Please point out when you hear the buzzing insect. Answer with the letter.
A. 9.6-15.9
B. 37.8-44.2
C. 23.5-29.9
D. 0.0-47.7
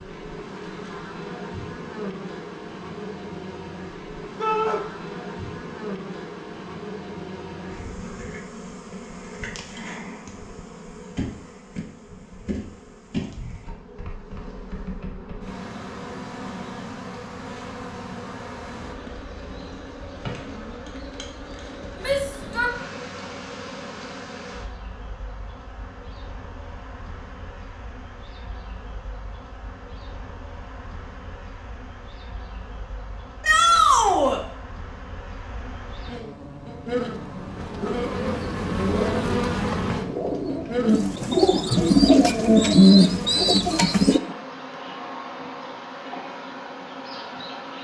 D.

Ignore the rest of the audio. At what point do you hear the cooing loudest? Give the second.
43 s.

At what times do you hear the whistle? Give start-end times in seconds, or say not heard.
not heard.